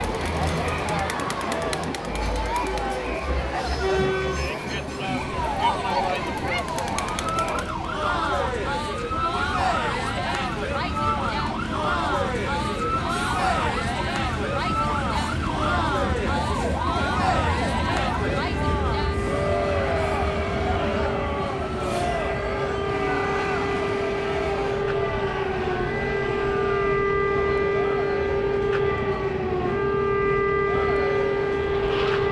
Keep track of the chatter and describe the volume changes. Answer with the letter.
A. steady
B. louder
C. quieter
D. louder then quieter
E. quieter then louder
C.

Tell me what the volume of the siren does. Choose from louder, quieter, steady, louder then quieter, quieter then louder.
louder.